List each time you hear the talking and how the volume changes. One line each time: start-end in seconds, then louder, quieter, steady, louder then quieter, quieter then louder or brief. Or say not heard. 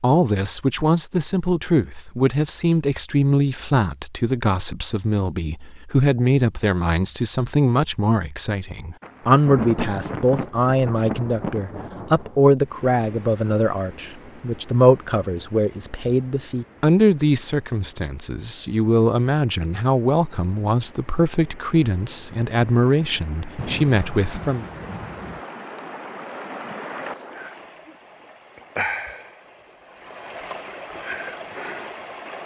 0.0-24.6 steady.